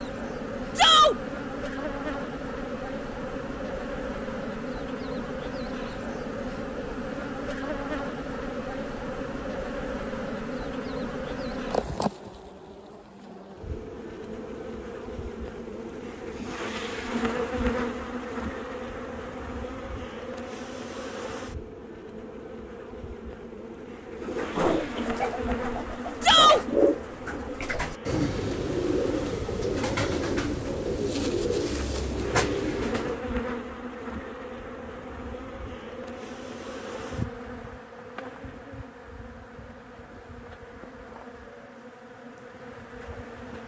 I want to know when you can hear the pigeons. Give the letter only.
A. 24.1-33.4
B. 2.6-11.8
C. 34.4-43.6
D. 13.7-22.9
A.